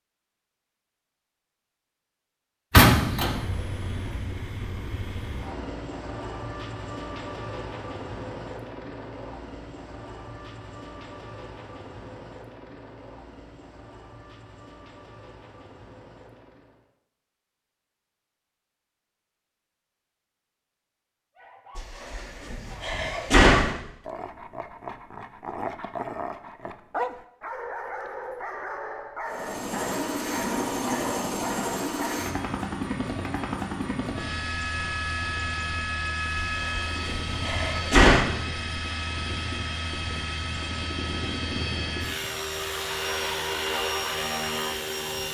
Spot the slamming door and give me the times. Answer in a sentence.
The slamming door can be heard from 2.7 to 3.4 s, from 21.8 to 23.8 s and from 36.4 to 38.2 s.